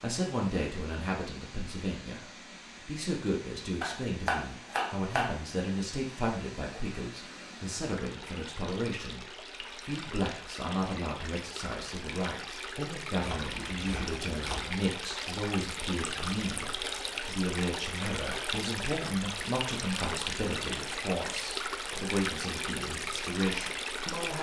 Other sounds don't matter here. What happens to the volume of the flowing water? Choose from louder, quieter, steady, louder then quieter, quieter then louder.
louder.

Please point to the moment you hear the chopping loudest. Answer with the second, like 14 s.
4 s.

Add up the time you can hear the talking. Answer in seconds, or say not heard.
24 s.